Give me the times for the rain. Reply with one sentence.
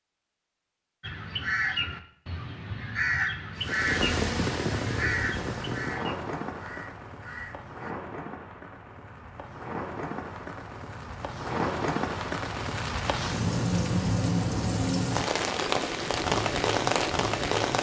The rain can be heard from 3.5 to 17.7 s.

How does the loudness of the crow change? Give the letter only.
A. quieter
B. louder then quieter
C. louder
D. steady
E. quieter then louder
A.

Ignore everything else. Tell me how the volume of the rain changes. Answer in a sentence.
The loudness of the rain goes down, then up.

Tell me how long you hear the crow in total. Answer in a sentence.
The crow can be heard for 7 seconds in total.